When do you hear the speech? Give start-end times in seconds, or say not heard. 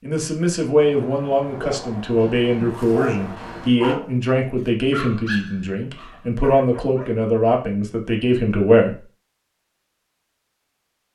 0.0-9.0.